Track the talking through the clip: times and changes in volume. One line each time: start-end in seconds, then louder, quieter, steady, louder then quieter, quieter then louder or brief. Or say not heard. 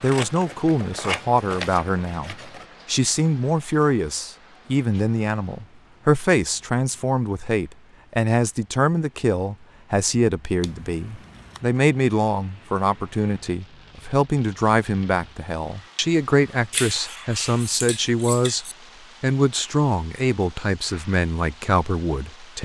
0.0-22.6 steady.